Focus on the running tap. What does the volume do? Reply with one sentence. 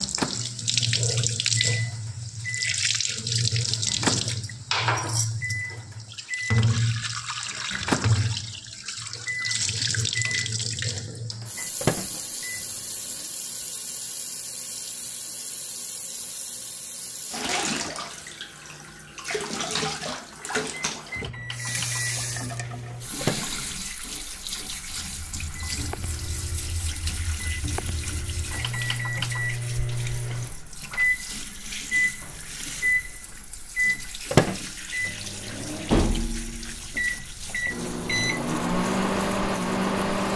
The loudness of the running tap goes down.